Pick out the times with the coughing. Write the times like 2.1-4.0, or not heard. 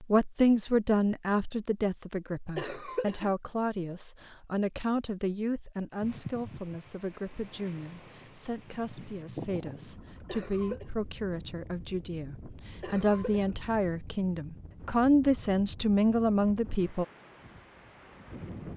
2.5-3.3, 10.2-10.9, 12.8-13.6.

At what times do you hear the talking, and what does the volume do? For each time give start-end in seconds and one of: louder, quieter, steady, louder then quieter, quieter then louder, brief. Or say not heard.
0.0-17.1 quieter then louder.